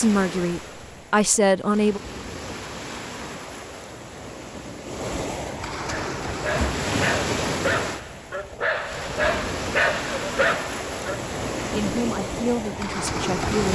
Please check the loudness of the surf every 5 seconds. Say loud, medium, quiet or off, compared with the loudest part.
medium, loud, loud.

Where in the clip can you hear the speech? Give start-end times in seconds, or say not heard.
0.0-2.0, 11.7-13.6.